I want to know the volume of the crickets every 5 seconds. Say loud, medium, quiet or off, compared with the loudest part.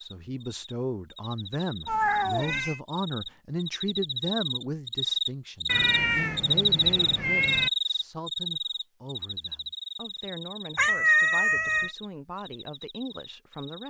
medium, loud, quiet.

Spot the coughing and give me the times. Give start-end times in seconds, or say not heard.
not heard.